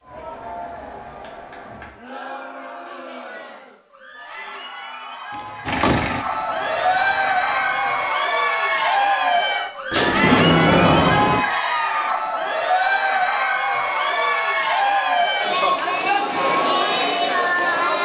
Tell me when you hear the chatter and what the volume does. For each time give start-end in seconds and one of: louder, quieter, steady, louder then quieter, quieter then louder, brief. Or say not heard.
0.0-17.9 louder.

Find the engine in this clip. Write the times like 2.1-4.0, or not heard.
5.7-8.2.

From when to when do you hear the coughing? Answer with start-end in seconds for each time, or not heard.
not heard.